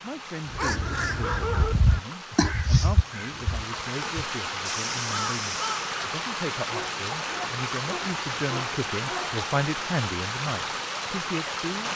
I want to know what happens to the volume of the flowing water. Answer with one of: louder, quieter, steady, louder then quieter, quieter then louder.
louder.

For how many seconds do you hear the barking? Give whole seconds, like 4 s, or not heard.
4 s.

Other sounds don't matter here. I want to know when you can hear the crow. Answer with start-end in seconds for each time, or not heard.
0.5-6.0.